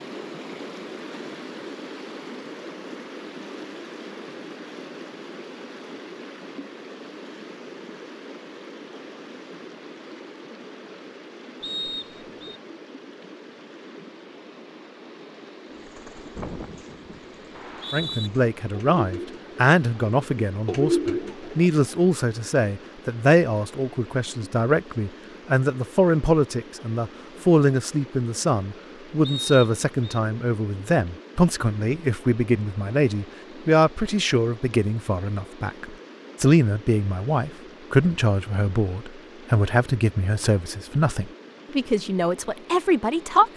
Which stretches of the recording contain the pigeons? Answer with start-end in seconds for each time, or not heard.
15.8-21.7.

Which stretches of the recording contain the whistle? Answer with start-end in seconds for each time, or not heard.
11.6-12.6, 17.5-18.3, 29.2-30.1.